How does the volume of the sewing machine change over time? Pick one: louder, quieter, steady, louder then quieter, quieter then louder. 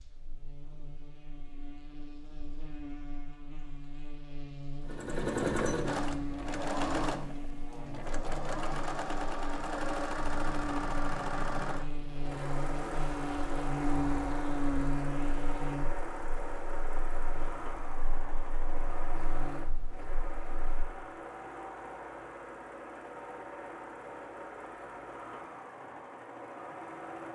quieter.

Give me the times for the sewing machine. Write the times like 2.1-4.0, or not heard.
4.8-27.2.